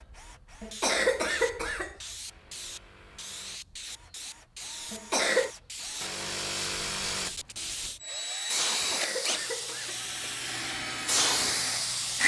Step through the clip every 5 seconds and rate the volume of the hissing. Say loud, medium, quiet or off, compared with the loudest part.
quiet, medium, loud.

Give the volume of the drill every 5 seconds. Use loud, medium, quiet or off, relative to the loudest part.
quiet, loud, loud.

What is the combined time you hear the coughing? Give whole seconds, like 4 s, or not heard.
3 s.